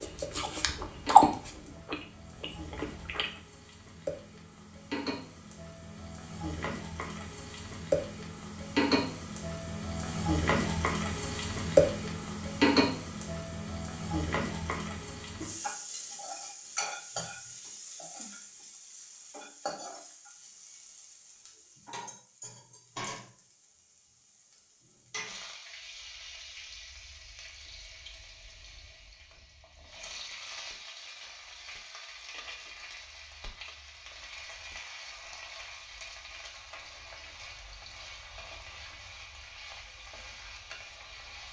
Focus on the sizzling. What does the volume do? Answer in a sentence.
The volume of the sizzling goes up, then down.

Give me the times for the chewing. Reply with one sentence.
You can hear the chewing from 0.0 to 3.3 s.